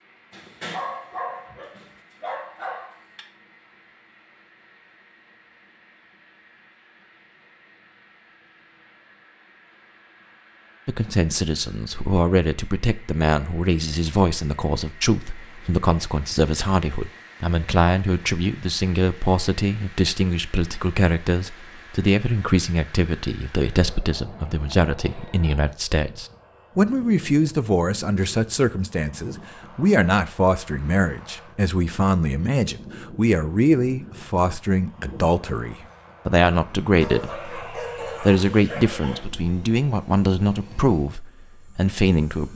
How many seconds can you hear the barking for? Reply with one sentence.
The barking can be heard for 5 seconds in total.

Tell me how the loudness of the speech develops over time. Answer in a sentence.
The loudness of the speech stays about the same.